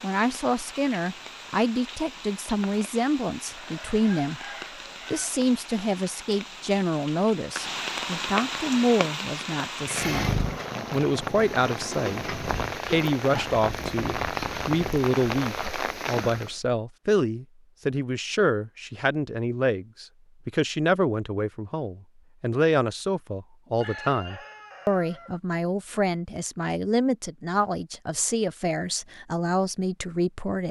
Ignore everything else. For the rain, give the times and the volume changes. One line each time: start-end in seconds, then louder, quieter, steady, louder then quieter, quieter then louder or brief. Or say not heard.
0.0-16.6 louder.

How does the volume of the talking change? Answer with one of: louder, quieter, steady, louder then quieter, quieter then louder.
steady.